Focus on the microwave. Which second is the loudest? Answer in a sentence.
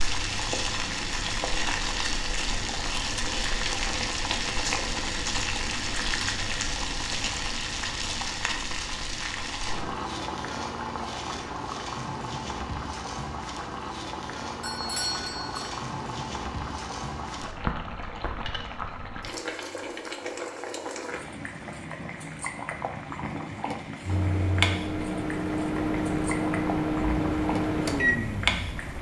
The volume of the microwave peaks at 28 seconds.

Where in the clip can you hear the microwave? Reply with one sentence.
The microwave can be heard from 24.0 to 28.9 s.